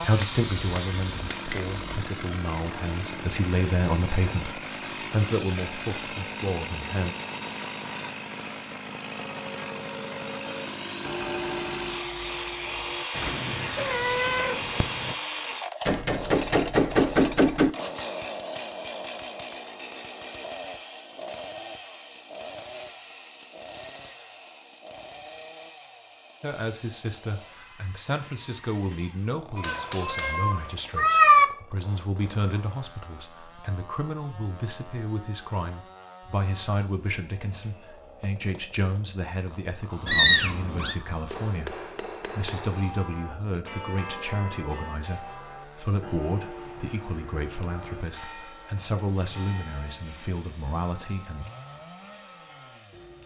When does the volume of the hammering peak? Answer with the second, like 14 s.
17 s.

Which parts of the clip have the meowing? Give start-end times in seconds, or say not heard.
13.2-15.2, 29.6-31.4, 40.0-41.0.